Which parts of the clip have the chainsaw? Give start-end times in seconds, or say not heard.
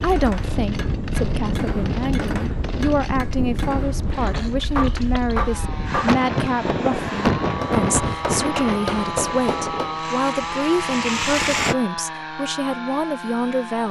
0.0-13.8.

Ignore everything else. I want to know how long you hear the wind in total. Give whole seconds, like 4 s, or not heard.
12 s.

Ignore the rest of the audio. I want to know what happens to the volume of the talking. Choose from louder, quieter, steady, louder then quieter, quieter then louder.
steady.